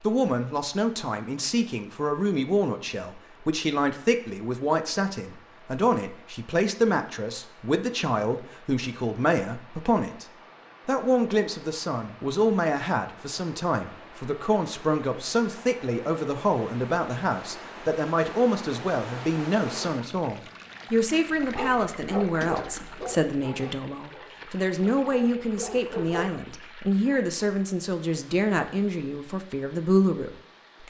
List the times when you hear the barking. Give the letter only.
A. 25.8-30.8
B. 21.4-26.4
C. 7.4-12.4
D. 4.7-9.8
B.